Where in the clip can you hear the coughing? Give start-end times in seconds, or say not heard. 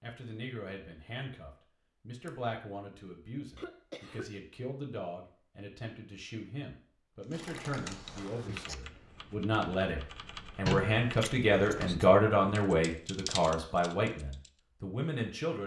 3.5-4.3.